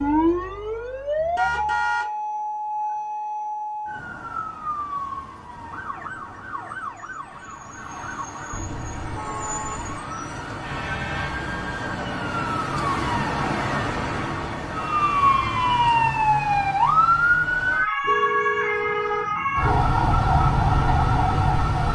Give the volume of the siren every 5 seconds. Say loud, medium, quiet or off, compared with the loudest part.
medium, quiet, medium, loud, loud.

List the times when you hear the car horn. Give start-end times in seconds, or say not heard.
1.4-2.1, 8.5-9.9, 18.0-19.9.